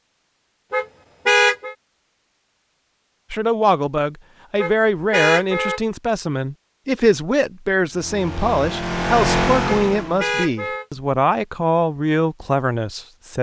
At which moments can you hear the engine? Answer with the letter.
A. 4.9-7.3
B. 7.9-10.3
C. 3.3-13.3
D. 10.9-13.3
B.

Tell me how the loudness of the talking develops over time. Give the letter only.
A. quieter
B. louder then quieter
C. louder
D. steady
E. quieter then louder
D.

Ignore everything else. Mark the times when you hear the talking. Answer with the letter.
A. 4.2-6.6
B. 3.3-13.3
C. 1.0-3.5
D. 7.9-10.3
B.